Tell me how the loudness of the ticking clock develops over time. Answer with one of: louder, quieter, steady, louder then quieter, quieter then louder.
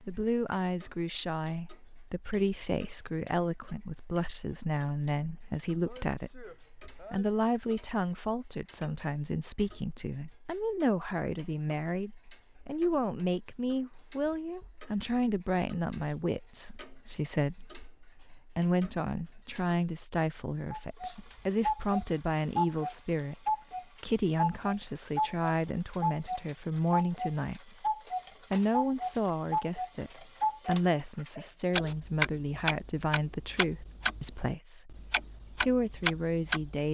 louder.